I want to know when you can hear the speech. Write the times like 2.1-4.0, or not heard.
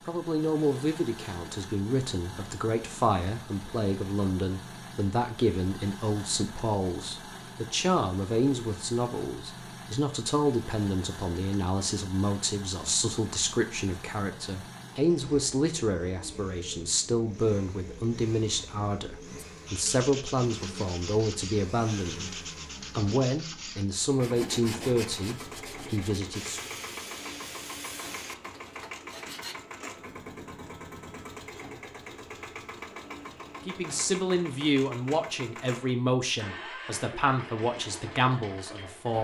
0.1-26.6, 33.6-39.1.